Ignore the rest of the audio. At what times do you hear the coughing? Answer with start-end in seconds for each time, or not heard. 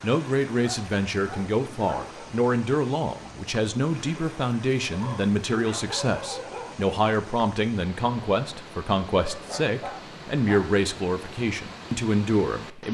not heard.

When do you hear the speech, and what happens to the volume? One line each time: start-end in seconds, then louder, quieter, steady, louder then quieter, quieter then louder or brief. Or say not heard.
0.0-12.9 steady.